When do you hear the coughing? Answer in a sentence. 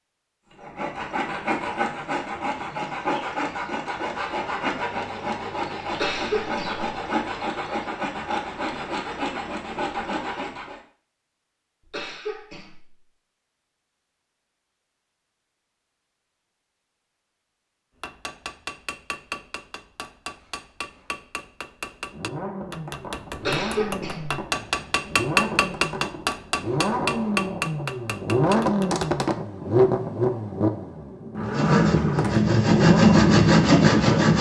The coughing can be heard from 5.9 to 6.8 s, from 11.8 to 12.9 s and from 23.4 to 24.4 s.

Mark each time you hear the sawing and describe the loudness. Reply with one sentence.
The sawing can be heard from 0.5 to 10.8 s, at a steady volume; and briefly from 31.4 to 34.3 s.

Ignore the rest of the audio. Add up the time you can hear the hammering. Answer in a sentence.
The hammering can be heard for 11 seconds in total.